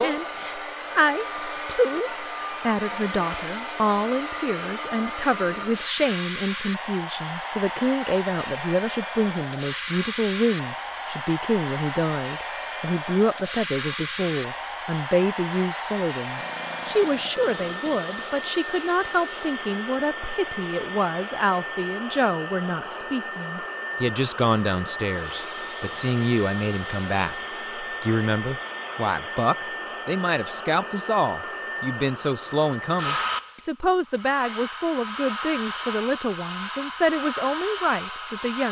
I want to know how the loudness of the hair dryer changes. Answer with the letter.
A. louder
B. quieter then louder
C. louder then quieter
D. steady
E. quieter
D.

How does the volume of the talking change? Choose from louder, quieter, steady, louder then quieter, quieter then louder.
steady.